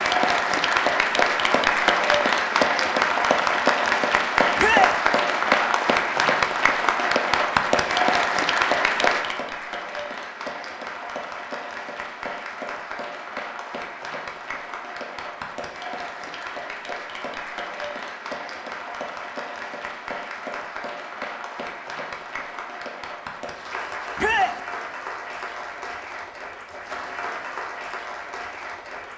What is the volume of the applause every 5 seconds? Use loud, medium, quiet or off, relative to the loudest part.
loud, loud, quiet, quiet, quiet, quiet.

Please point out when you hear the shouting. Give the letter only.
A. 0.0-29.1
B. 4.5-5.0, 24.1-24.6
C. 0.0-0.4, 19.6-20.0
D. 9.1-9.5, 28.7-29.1
B.